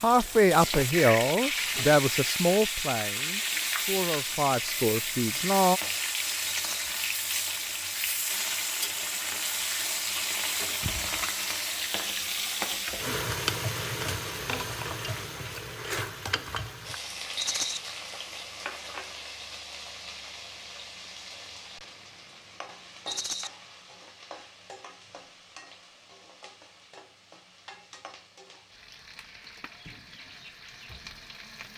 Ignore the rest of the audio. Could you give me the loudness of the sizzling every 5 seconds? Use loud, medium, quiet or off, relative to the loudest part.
loud, loud, loud, medium, quiet, quiet, quiet.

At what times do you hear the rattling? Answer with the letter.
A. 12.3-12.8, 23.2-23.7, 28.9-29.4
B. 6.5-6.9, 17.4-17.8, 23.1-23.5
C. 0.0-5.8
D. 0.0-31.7
B.